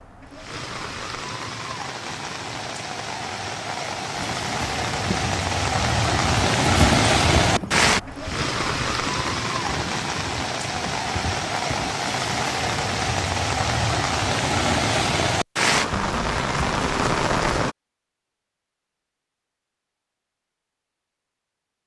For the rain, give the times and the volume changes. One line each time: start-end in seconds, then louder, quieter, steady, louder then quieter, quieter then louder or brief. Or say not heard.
0.0-17.8 louder.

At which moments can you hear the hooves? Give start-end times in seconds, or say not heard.
4.2-11.9.